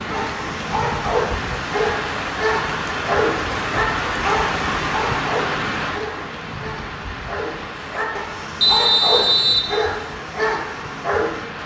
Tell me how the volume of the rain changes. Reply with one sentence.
The loudness of the rain goes down.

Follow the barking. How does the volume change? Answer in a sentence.
The loudness of the barking stays about the same.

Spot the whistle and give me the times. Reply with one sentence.
The whistle can be heard from 8.6 to 9.7 s.